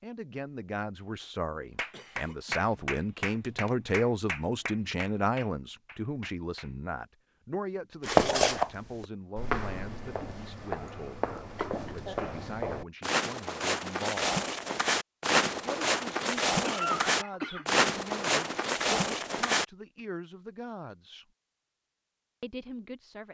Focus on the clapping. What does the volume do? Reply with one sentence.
The loudness of the clapping goes down.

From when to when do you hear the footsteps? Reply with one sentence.
You can hear the footsteps from 8.0 to 19.6 s.